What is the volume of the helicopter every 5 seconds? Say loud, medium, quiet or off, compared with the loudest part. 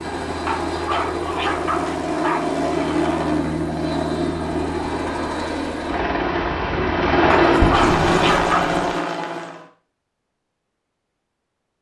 loud, loud, off.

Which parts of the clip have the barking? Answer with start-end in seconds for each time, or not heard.
0.5-2.5, 7.3-8.8.